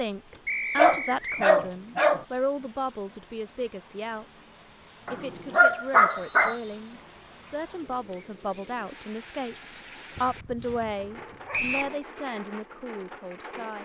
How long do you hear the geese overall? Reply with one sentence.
The geese can't be heard in this clip.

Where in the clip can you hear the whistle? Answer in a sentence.
You can hear the whistle from 0.5 to 1.4 s, from 6.1 to 6.8 s and from 11.5 to 11.9 s.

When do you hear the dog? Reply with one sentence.
The dog can be heard from 0.8 to 2.2 s, from 5.0 to 6.5 s and from 10.2 to 11.9 s.